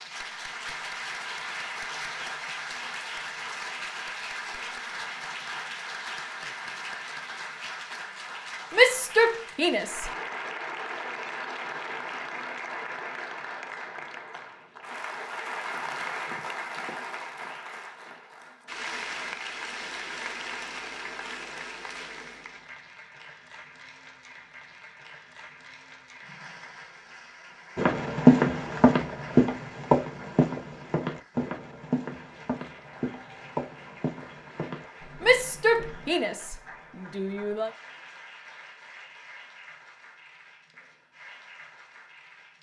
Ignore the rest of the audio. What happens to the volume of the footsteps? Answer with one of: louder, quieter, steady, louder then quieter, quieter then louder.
quieter.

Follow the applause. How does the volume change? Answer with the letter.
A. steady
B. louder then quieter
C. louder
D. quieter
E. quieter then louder
D.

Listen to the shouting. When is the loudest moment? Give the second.
9 s.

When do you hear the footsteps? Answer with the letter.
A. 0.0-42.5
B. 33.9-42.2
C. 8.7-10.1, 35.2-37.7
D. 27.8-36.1
D.